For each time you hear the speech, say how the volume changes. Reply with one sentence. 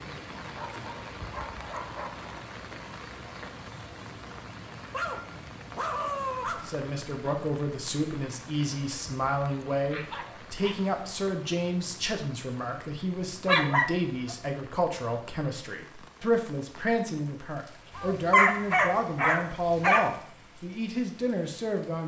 You can hear the speech from 6.7 to 22.0 s, at a steady volume.